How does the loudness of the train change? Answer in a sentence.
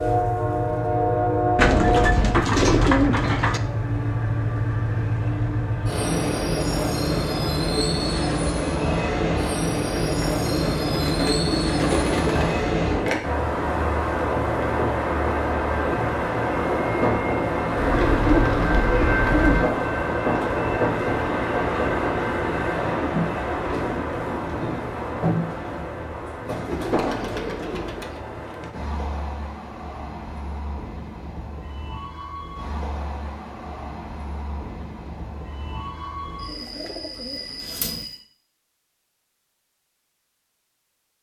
The volume of the train goes down.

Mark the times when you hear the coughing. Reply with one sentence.
You can't hear the coughing here.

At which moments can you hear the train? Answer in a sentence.
You can hear the train from 0.0 to 38.2 s.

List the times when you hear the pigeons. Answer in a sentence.
You can hear the pigeons from 1.6 to 3.6 s, from 9.9 to 12.7 s, from 17.8 to 19.6 s, from 26.6 to 28.2 s and from 36.5 to 38.0 s.